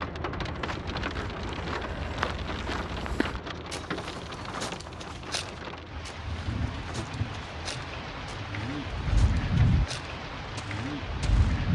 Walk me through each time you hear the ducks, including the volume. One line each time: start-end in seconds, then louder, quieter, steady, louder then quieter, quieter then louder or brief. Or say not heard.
not heard.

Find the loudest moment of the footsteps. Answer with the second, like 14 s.
2 s.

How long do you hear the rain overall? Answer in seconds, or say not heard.
12 s.